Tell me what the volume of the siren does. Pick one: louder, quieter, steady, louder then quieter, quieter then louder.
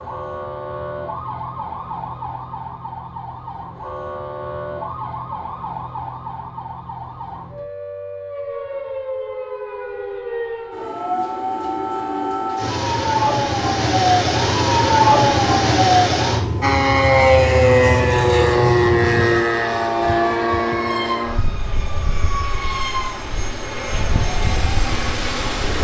louder then quieter.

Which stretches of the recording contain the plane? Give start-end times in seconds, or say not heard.
16.6-25.7.